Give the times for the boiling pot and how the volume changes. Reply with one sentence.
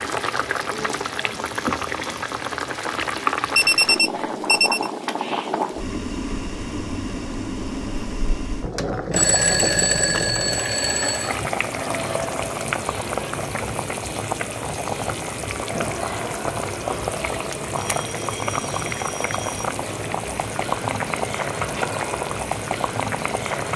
The boiling pot can be heard from 0.0 to 23.7 s, at a steady volume.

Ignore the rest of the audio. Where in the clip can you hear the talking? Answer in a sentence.
The talking can't be heard in this clip.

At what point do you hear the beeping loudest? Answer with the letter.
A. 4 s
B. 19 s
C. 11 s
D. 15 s
A.